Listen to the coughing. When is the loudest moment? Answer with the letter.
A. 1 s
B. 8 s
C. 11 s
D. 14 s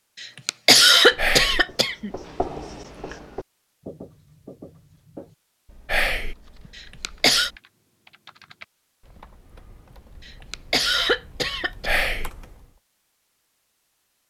A.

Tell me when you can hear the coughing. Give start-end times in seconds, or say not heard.
0.2-2.1, 6.8-7.5, 10.2-11.9.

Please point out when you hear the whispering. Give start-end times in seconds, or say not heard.
1.1-1.6, 5.8-6.3, 11.8-12.3.